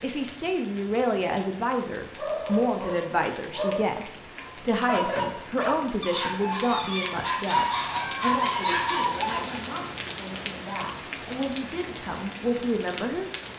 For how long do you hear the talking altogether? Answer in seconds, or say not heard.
13 s.